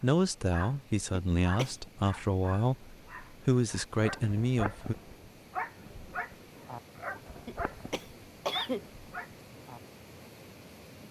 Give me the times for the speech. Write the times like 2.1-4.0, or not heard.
0.0-5.0.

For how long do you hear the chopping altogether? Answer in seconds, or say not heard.
not heard.